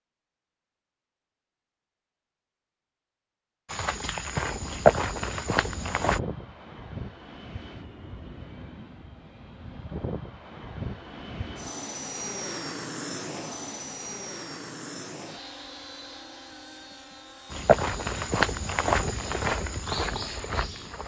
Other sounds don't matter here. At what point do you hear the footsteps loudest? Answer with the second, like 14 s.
5 s.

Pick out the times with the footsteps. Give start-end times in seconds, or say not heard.
3.6-6.2, 17.5-21.0.